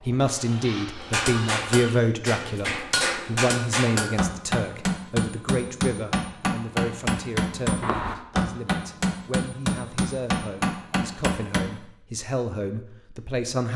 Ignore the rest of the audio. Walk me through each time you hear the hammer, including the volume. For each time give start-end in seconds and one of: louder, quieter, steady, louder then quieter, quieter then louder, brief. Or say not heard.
0.9-11.7 steady.